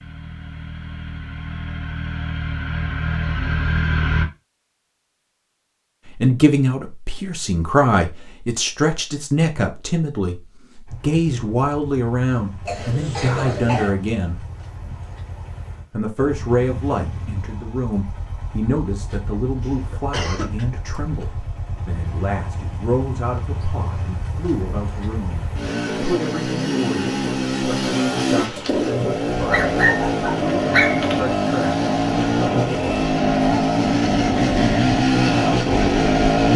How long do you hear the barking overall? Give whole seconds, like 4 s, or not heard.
2 s.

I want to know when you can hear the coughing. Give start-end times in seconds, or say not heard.
12.7-13.9, 19.6-20.6.